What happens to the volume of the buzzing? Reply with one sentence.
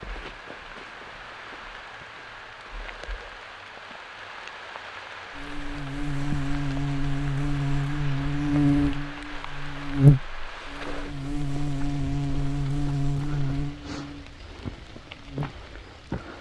The volume of the buzzing goes up, then down.